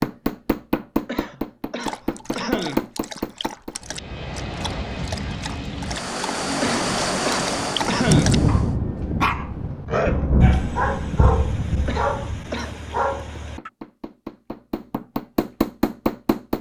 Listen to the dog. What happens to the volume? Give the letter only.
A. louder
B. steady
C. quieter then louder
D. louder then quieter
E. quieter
A.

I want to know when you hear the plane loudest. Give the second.
7 s.